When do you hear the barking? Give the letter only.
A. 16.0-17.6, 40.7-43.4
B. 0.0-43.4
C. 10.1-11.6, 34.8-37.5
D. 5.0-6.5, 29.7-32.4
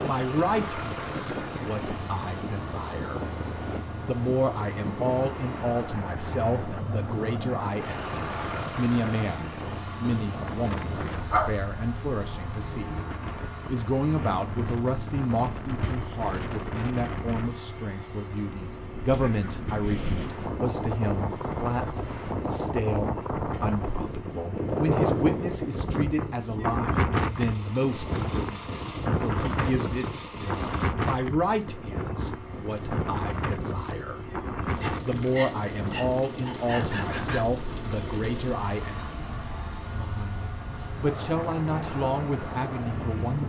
C.